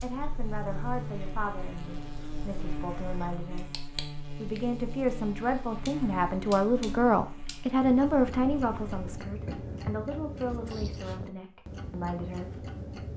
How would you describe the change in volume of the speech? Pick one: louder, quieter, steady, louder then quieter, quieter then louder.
louder then quieter.